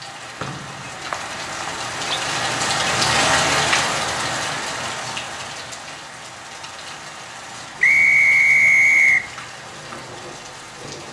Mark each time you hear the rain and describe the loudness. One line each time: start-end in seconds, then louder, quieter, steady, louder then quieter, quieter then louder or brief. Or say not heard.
0.0-11.0 louder then quieter.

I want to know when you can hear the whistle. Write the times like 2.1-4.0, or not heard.
0.4-2.2, 7.8-9.2.